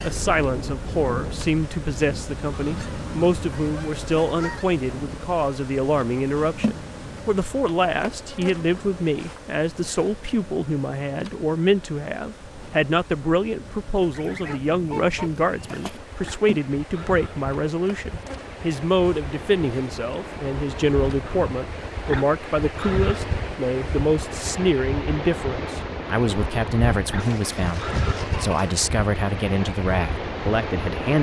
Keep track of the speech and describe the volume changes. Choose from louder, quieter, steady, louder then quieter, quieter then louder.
steady.